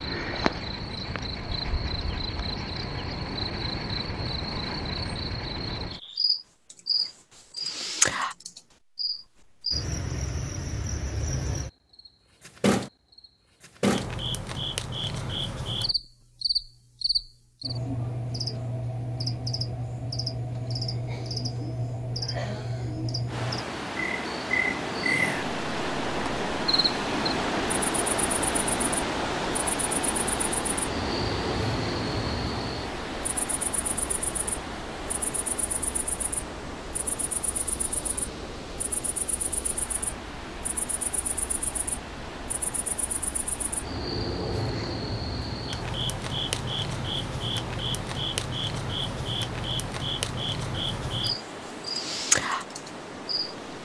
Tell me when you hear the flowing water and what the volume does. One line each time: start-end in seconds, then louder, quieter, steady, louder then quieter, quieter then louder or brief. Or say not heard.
23.2-53.8 quieter.